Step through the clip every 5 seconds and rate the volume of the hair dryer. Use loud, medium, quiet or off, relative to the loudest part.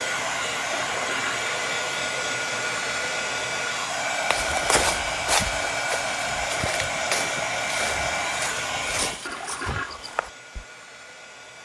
loud, loud, quiet.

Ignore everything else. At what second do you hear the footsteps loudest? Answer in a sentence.
The loudest moment of the footsteps is at 5 seconds.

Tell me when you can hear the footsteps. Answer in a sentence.
The footsteps can be heard from 4.3 to 10.7 s.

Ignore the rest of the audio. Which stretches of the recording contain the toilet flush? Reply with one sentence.
You can hear the toilet flush from 0.7 to 1.4 s and from 9.2 to 9.9 s.